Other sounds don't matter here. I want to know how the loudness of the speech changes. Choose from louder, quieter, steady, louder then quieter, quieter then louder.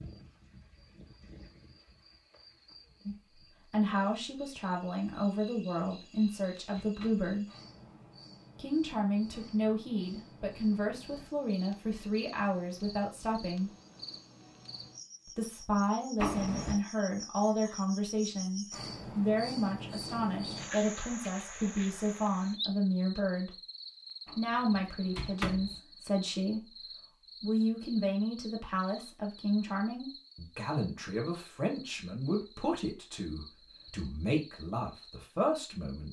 steady.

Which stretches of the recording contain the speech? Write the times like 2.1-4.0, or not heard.
3.0-7.5, 8.6-13.7, 15.2-23.6, 24.3-36.0.